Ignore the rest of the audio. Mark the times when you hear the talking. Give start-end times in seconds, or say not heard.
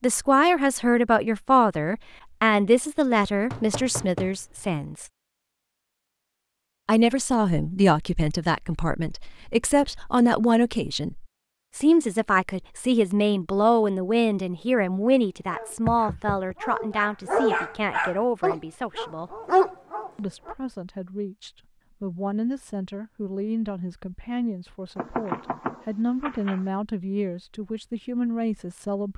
0.0-5.0, 6.8-19.4, 20.1-29.1.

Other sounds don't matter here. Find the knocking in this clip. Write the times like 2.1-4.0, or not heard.
3.5-4.6, 15.8-16.6, 24.9-26.6.